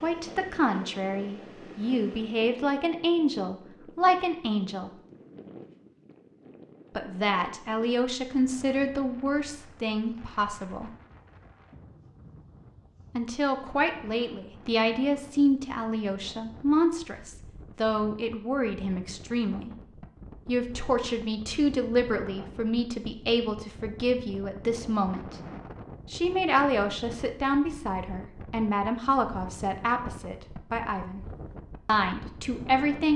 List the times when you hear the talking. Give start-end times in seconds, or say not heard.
0.0-4.9, 7.0-10.9, 13.2-19.7, 20.4-25.4, 26.1-31.2, 31.9-33.1.